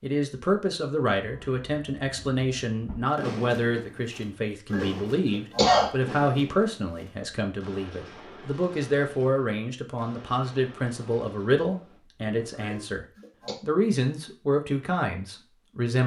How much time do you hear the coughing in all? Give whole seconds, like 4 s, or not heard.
2 s.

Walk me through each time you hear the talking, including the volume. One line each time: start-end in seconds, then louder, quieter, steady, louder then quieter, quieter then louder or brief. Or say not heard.
0.0-16.0 steady.